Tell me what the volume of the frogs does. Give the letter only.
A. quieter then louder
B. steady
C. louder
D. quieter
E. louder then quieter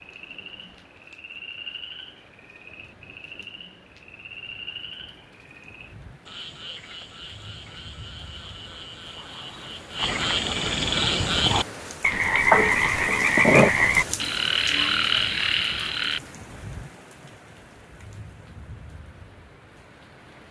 C.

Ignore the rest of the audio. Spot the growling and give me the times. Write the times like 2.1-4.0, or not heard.
12.5-13.7.